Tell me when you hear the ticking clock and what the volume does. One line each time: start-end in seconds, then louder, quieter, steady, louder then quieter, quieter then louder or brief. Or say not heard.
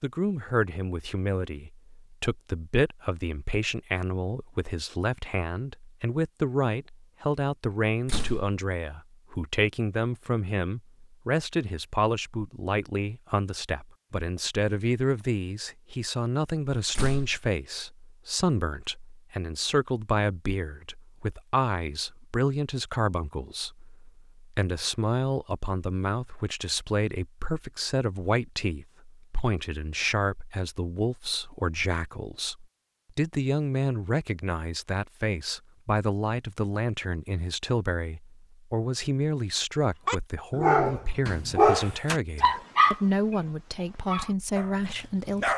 not heard.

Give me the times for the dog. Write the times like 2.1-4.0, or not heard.
40.0-45.5.